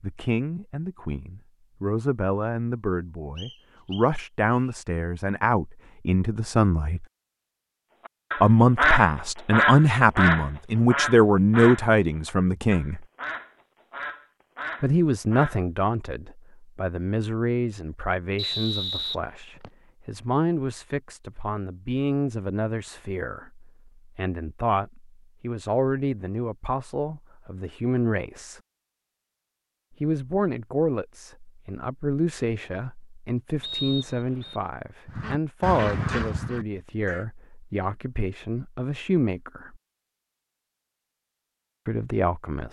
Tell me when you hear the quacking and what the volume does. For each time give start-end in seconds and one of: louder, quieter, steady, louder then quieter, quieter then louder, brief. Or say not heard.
8.1-15.6 quieter
35.0-37.2 brief.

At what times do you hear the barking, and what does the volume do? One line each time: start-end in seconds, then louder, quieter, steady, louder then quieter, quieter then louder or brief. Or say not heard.
not heard.